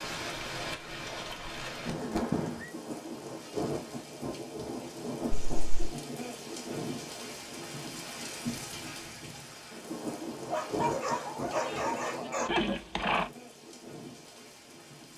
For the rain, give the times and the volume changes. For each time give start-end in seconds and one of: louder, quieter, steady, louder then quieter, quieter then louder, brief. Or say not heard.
0.0-15.1 quieter.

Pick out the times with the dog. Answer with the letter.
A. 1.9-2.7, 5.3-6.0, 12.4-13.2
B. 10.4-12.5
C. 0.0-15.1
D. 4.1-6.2
B.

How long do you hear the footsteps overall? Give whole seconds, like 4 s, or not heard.
not heard.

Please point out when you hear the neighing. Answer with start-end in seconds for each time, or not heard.
1.9-2.7, 5.3-6.0, 12.4-13.2.